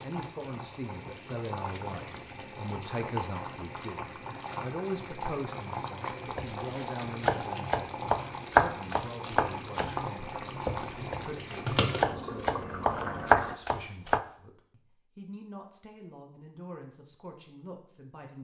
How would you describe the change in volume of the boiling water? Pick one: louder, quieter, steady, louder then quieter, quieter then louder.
louder.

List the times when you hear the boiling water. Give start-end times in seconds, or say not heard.
0.0-13.6.